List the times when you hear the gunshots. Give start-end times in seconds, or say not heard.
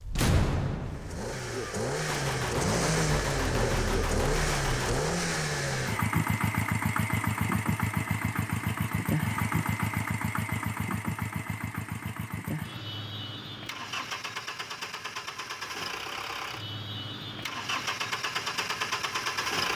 2.0-5.0.